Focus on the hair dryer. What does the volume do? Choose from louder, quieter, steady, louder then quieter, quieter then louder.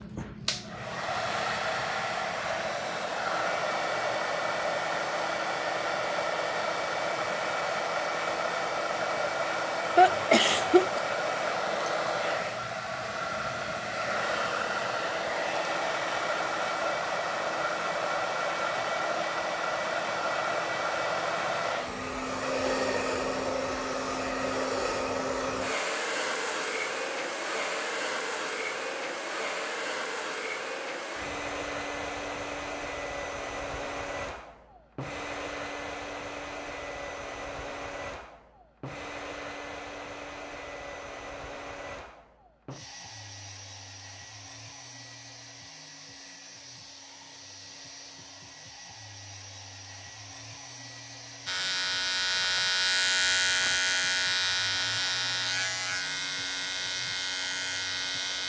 quieter.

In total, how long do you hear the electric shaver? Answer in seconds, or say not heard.
7 s.